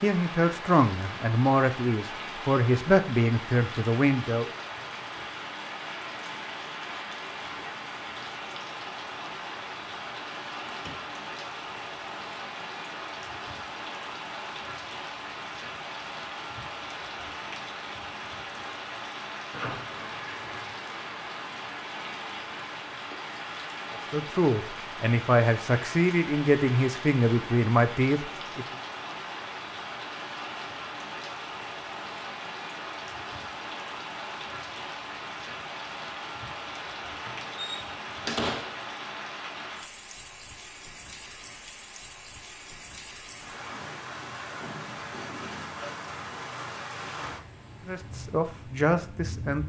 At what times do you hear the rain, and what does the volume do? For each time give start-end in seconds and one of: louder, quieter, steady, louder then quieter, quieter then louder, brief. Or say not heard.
0.0-49.6 steady.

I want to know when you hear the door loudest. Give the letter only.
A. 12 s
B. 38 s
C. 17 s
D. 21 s
B.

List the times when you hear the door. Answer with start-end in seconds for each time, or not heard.
10.7-11.1, 19.5-20.8, 37.2-38.9.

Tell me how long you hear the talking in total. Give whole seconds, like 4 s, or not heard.
11 s.